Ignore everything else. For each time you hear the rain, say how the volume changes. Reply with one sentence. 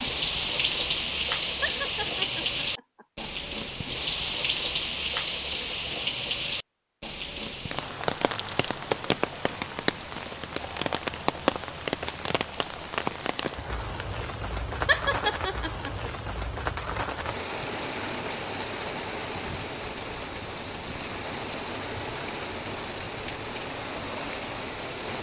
The rain can be heard from 0.0 to 25.1 s, getting quieter.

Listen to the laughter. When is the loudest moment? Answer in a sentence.
The volume of the laughter peaks at 15 seconds.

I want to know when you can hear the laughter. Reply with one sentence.
The laughter can be heard from 1.6 to 3.2 s and from 14.8 to 16.3 s.